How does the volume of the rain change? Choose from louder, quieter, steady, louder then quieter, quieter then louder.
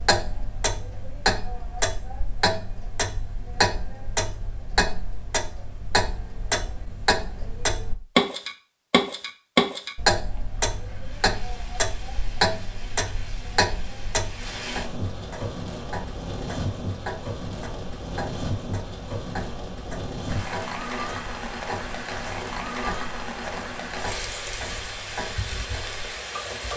louder.